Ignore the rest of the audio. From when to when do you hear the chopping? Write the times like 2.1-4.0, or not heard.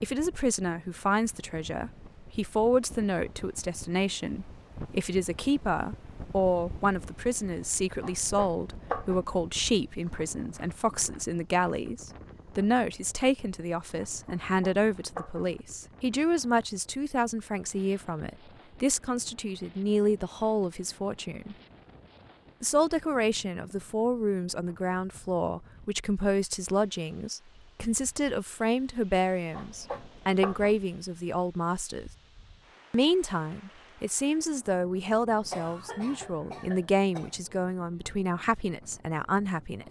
8.0-9.2, 14.2-15.5, 29.5-30.8.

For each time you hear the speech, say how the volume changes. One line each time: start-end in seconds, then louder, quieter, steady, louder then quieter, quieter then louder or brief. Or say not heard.
0.0-21.6 steady
22.6-32.1 steady
32.9-39.8 steady.